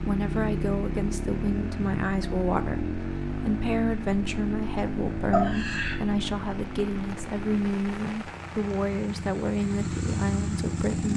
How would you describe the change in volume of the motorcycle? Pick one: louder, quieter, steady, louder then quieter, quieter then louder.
quieter then louder.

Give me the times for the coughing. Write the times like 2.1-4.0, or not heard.
5.3-6.0.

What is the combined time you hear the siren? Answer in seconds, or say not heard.
not heard.